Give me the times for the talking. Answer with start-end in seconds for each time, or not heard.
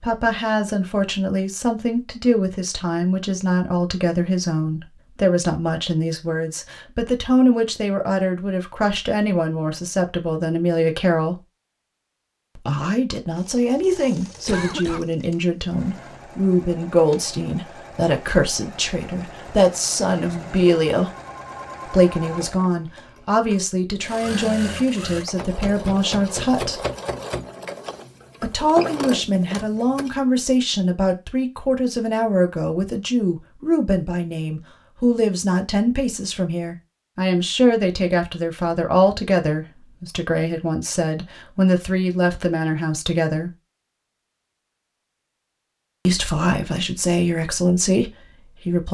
0.0-11.4, 12.6-21.1, 21.9-26.9, 28.4-43.5, 46.0-48.8.